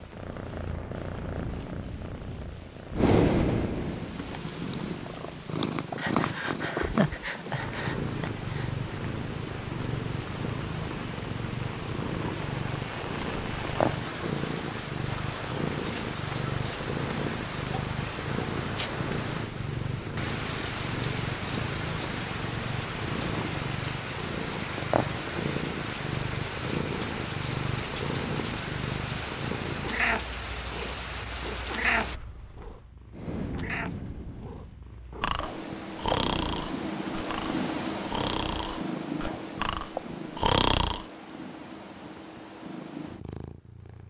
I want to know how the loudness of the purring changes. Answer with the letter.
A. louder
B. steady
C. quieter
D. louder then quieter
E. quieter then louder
B.